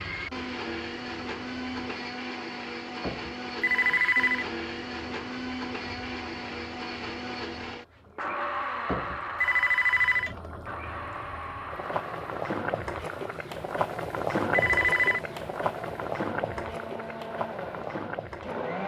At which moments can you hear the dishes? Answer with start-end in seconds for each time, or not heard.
not heard.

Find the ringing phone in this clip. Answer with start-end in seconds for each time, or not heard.
3.6-4.5, 9.4-10.3, 14.5-15.2.